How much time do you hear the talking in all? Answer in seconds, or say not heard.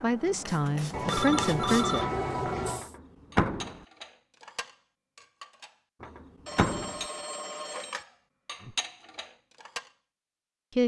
2 s.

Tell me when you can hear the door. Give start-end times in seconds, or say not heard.
2.8-3.8, 6.0-7.0.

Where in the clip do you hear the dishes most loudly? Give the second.
9 s.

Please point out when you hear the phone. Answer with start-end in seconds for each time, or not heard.
0.9-2.9, 6.5-8.1.